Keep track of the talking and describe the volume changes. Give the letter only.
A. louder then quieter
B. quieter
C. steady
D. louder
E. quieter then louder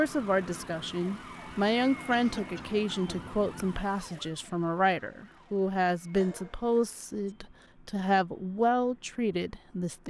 C.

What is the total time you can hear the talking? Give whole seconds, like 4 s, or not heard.
10 s.